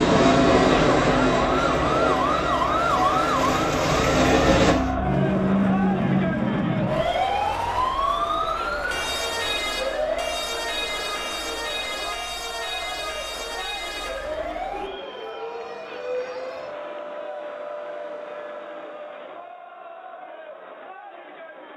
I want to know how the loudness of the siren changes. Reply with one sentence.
The volume of the siren goes down.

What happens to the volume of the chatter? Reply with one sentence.
The volume of the chatter goes down.